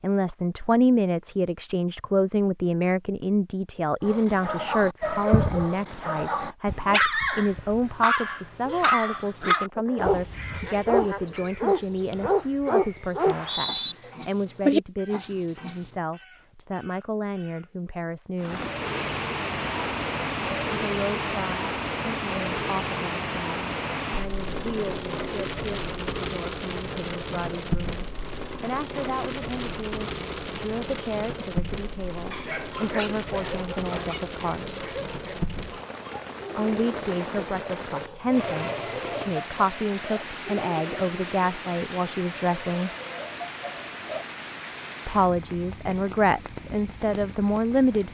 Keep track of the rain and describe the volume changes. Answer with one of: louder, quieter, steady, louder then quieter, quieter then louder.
quieter.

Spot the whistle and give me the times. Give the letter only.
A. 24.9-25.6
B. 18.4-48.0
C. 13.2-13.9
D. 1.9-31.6
C.